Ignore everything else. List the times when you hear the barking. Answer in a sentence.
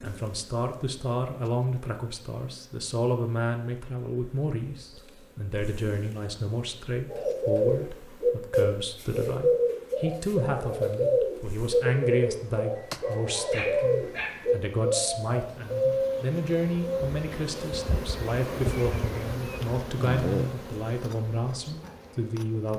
You can hear the barking from 12.8 to 14.4 s.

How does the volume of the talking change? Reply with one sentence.
The volume of the talking stays about the same.